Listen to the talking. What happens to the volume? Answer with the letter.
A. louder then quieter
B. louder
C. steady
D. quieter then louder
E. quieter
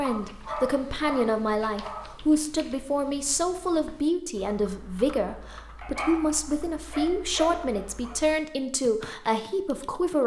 C.